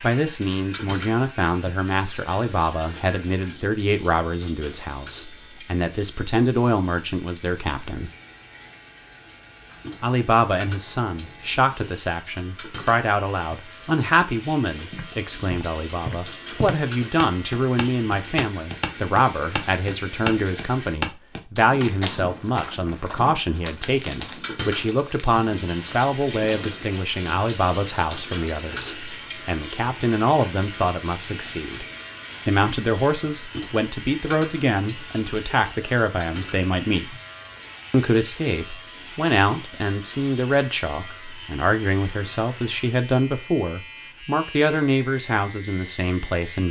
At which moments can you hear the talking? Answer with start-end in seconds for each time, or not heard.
0.0-8.1, 10.0-31.9, 32.5-37.1, 37.9-46.6.